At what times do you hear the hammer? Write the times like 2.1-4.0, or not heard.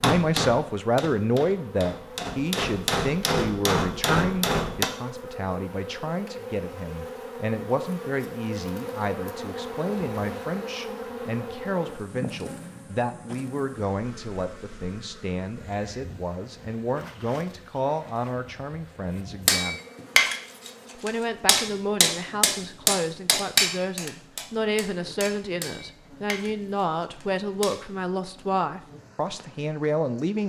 0.0-4.9, 19.4-27.8.